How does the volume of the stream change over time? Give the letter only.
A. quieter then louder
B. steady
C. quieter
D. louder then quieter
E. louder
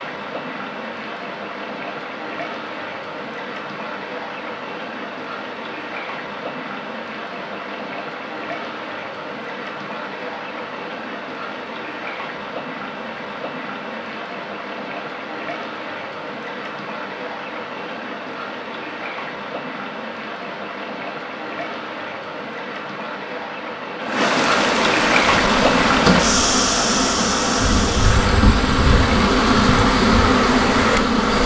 E.